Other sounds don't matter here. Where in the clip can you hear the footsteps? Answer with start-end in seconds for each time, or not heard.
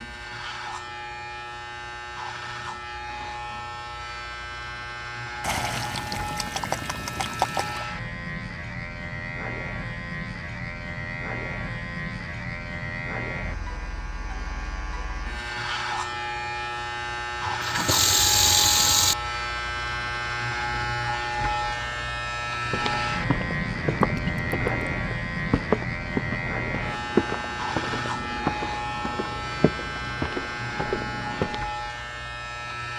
22.6-31.6.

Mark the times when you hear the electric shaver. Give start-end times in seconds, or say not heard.
0.0-32.9.